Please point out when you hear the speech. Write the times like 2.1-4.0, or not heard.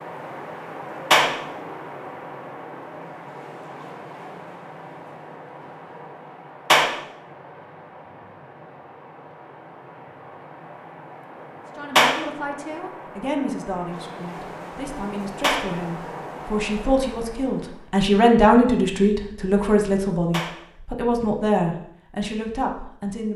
11.8-23.3.